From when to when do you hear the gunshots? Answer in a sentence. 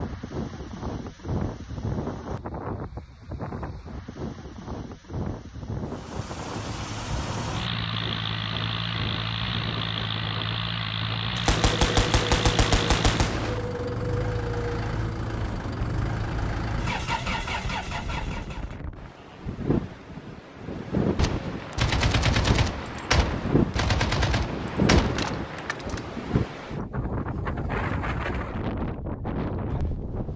The gunshots can be heard from 11.3 to 13.6 s and from 21.1 to 26.0 s.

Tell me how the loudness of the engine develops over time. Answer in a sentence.
The loudness of the engine stays about the same.